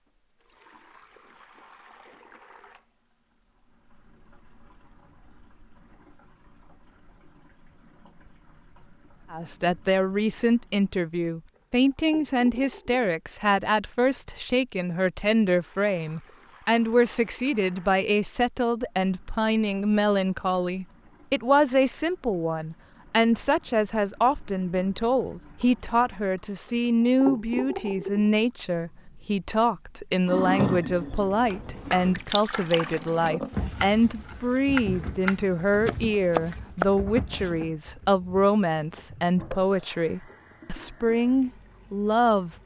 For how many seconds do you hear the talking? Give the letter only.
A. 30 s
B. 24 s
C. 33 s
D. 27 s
C.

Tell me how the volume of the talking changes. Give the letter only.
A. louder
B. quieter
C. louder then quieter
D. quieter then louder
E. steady
E.